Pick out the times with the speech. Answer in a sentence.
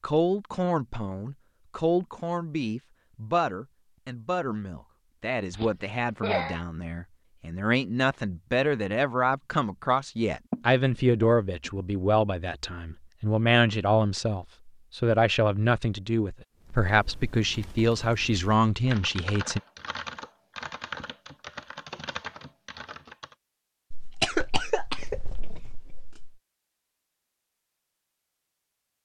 The speech can be heard from 0.0 to 19.6 s.